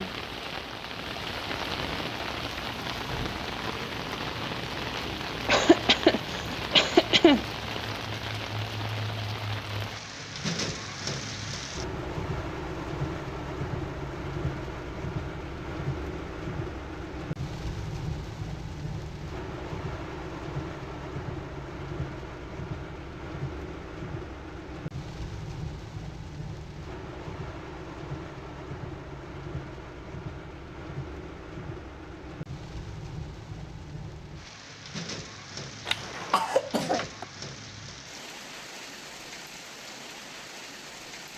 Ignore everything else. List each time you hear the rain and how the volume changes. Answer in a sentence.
The rain can be heard from 0.0 to 41.3 s, getting quieter.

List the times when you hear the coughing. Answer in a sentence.
The coughing can be heard from 5.5 to 7.5 s and from 35.9 to 37.2 s.